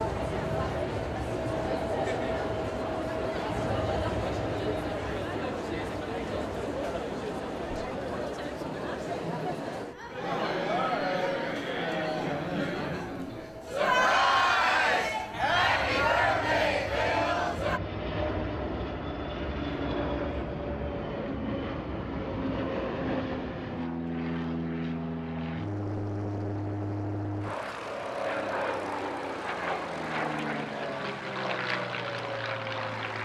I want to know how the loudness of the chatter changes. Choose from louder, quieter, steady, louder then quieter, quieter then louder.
louder.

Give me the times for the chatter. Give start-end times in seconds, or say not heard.
0.0-17.8.